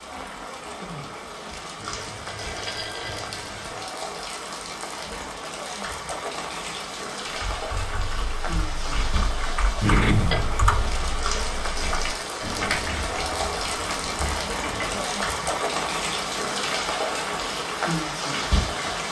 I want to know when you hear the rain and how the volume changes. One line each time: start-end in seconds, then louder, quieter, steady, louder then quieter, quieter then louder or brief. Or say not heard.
0.0-19.0 louder.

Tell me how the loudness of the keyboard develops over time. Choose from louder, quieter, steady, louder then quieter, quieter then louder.
louder then quieter.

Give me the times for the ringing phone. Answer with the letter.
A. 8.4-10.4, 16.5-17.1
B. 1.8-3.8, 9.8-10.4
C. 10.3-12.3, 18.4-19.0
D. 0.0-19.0
B.